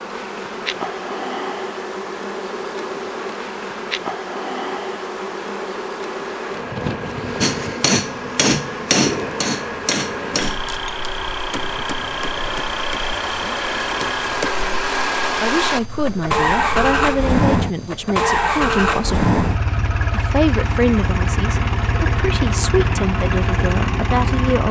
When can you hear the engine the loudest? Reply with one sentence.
The volume of the engine peaks at 17 seconds.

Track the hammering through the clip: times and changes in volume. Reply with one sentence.
You can hear the hammering from 7.4 to 14.5 s, getting quieter.